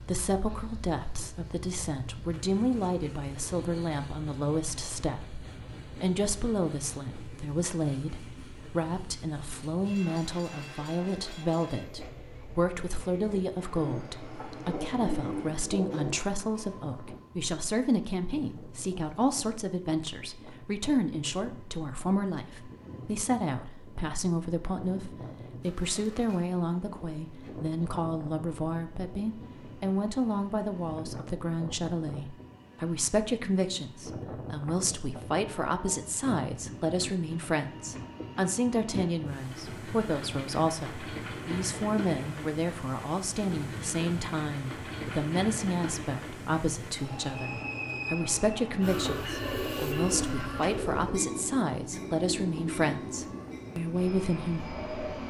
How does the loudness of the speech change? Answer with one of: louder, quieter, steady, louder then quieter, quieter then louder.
steady.